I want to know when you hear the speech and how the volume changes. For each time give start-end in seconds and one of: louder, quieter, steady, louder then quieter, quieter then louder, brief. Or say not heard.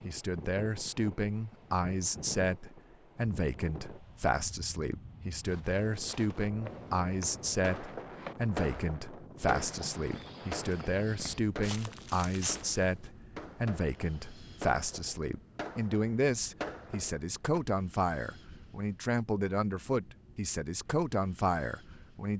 0.1-22.3 steady.